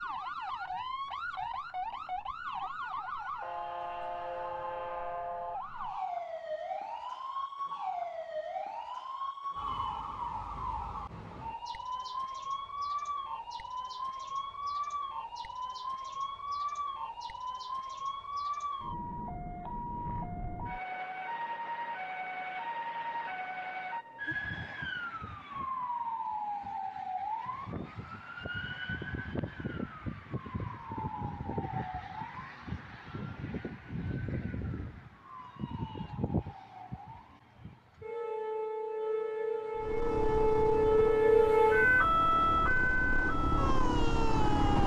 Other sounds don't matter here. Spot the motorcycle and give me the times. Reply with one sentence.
You can hear the motorcycle from 39.8 to 44.8 s.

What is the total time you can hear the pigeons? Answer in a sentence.
You can't hear the pigeons here.